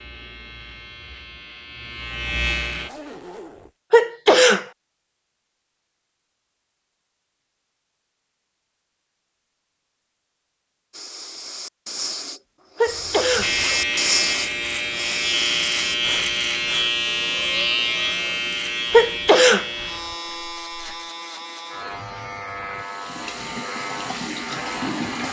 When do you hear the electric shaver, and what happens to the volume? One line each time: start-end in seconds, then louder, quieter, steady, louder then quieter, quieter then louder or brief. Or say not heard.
0.0-2.9 brief
13.4-25.2 quieter.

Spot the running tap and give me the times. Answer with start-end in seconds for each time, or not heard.
22.7-25.2.